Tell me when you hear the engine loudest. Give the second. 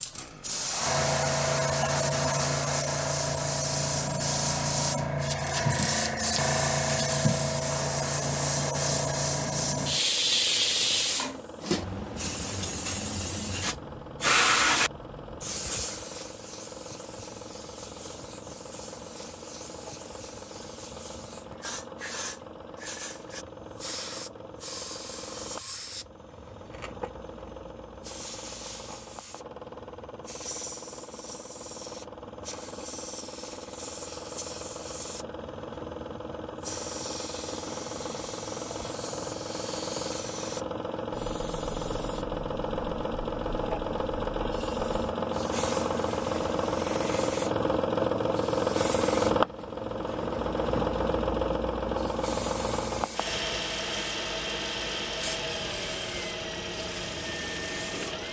49 s.